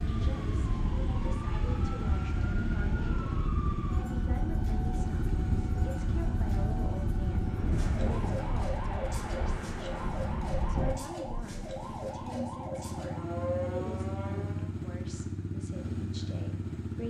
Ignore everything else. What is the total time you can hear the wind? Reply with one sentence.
The wind can be heard for 11 seconds in total.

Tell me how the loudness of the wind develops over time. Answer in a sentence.
The volume of the wind stays about the same.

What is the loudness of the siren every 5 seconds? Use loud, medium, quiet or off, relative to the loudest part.
loud, loud, loud, off.